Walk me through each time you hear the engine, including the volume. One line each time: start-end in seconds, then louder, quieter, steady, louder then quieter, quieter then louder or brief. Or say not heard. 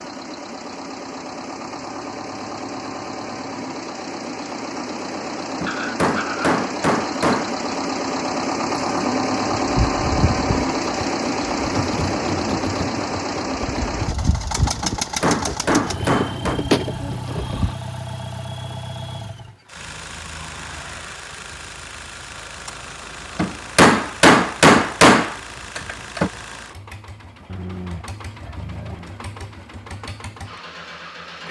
0.0-31.4 louder then quieter.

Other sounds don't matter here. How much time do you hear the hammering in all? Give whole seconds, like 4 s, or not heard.
7 s.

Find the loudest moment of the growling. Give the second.
6 s.